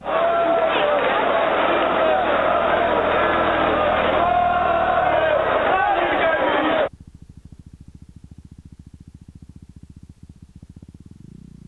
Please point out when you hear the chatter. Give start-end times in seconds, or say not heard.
0.0-6.9.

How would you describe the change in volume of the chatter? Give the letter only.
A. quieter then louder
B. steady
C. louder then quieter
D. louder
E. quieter
B.